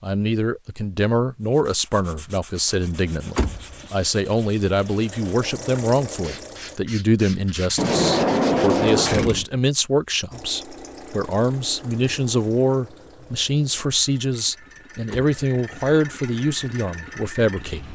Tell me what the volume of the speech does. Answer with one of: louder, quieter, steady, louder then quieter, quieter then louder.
steady.